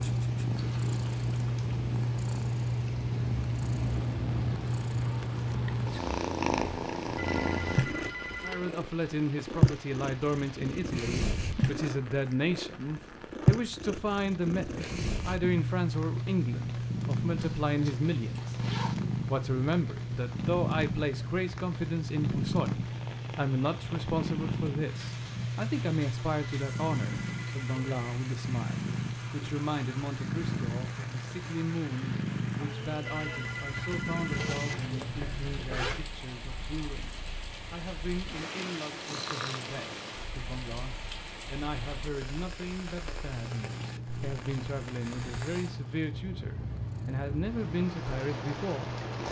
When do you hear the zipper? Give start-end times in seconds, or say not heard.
0.6-1.7, 17.4-18.9, 34.3-36.0.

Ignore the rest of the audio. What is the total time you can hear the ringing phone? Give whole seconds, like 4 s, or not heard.
5 s.